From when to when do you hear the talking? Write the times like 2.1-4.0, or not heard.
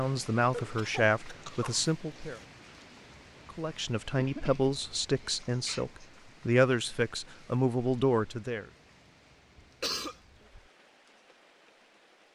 0.0-2.4, 3.5-8.7.